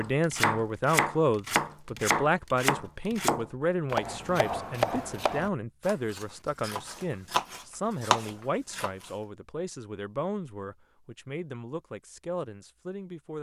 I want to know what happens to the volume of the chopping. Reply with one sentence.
The loudness of the chopping goes down, then up.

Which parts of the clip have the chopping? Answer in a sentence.
The chopping can be heard from 0.0 to 9.1 s.